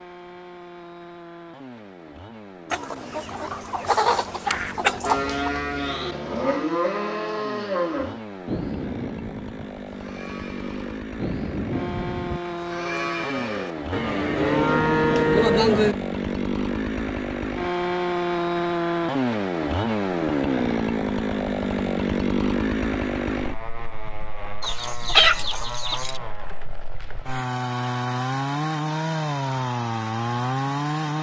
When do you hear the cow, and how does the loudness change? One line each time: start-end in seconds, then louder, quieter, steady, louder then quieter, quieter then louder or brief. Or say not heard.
4.5-15.9 quieter then louder.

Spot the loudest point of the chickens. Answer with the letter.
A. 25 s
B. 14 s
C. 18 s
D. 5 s
A.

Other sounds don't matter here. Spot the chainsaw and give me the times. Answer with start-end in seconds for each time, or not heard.
0.0-31.1.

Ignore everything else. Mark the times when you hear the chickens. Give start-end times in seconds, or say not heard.
2.7-5.5, 24.6-26.2.